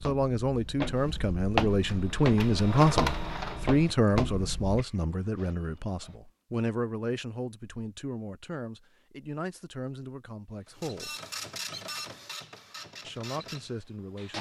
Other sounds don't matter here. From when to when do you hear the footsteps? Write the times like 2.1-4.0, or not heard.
0.0-4.8.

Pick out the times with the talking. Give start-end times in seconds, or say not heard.
0.0-11.2, 13.1-14.3.